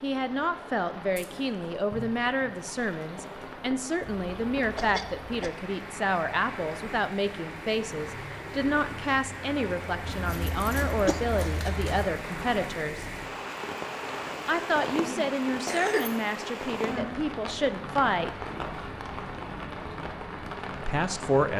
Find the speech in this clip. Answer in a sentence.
The speech can be heard from 0.0 to 13.1 s, from 14.4 to 18.3 s and from 20.8 to 21.5 s.